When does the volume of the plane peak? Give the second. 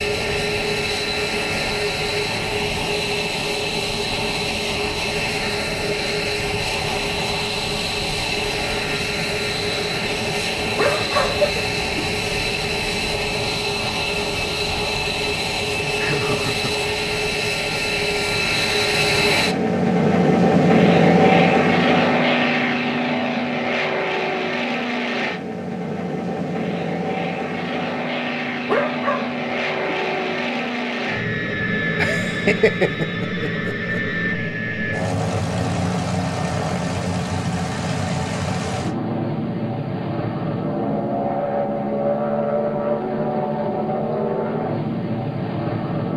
21 s.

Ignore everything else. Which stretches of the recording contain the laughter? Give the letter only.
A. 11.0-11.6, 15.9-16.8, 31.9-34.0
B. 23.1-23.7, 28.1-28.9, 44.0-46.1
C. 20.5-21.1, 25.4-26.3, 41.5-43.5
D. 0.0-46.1
A.